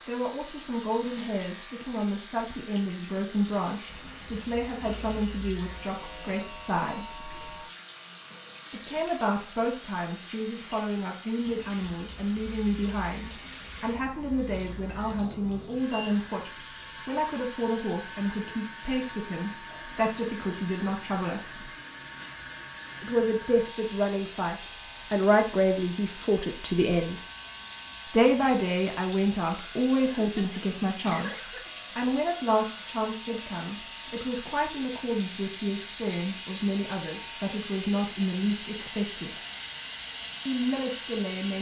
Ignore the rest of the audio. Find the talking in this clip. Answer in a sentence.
The talking can be heard from 0.1 to 7.3 s, from 8.7 to 21.7 s, from 23.0 to 27.2 s, from 28.1 to 39.4 s and from 40.5 to 41.5 s.